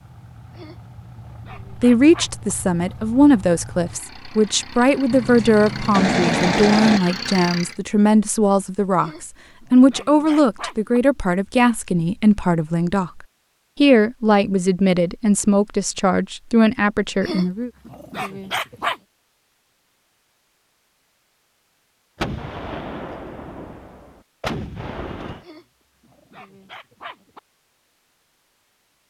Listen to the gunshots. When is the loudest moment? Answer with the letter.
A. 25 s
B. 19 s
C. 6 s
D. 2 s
C.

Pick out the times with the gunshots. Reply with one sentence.
You can hear the gunshots from 5.1 to 7.0 s and from 22.1 to 25.4 s.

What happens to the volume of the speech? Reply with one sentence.
The loudness of the speech stays about the same.